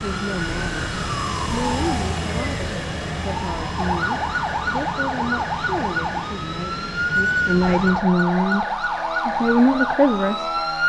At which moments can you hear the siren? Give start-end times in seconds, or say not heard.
0.0-10.8.